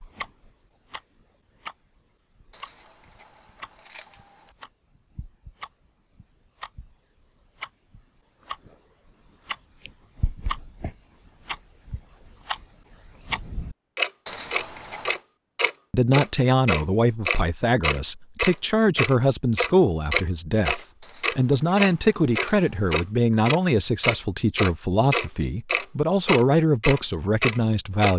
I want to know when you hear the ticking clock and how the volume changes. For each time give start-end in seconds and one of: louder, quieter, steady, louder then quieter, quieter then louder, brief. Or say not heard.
0.0-28.1 louder.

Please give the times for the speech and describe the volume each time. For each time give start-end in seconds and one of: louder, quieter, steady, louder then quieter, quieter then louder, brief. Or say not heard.
15.9-28.1 steady.